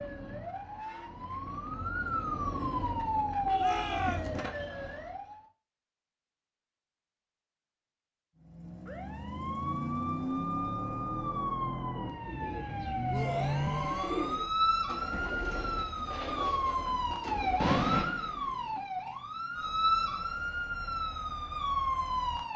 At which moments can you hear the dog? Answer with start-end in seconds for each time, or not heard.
not heard.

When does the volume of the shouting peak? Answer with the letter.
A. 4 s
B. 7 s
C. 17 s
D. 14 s
A.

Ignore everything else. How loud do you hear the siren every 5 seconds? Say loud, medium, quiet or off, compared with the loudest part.
loud, medium, loud, loud, loud.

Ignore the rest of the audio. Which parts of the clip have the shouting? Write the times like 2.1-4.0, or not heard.
3.5-4.3, 13.1-14.3.